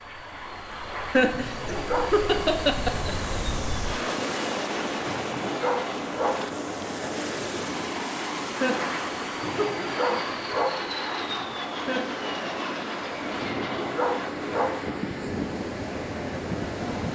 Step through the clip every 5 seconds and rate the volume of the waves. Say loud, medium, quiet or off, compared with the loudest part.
loud, loud, medium, loud.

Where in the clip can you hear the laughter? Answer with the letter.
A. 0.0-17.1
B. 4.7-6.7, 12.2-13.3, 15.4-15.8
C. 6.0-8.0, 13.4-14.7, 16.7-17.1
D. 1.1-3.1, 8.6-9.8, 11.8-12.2
D.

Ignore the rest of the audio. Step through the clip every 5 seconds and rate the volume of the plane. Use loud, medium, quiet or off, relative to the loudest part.
medium, loud, loud, medium.